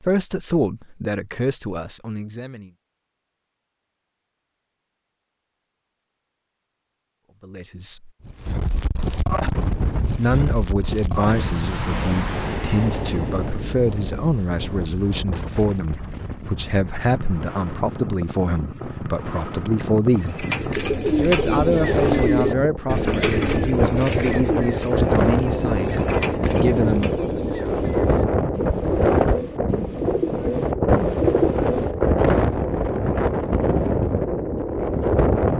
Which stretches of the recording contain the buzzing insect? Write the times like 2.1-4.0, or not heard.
not heard.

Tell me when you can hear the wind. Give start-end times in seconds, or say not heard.
8.2-35.5.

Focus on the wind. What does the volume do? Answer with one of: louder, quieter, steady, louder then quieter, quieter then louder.
quieter then louder.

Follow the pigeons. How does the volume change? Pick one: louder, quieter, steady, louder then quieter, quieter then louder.
quieter then louder.